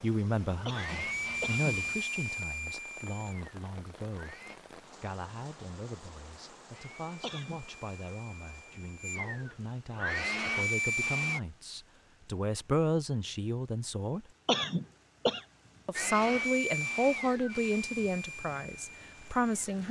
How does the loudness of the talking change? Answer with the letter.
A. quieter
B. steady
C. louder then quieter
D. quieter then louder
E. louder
D.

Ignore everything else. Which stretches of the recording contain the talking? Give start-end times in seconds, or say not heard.
0.0-4.3, 5.0-14.2, 15.8-19.8.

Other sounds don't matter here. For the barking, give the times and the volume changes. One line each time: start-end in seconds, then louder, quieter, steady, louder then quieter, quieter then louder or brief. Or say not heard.
not heard.